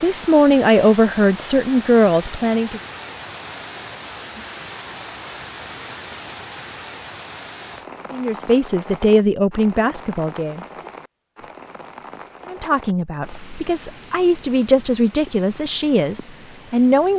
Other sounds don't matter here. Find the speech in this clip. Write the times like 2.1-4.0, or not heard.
0.0-2.8, 8.1-10.7, 12.4-17.1.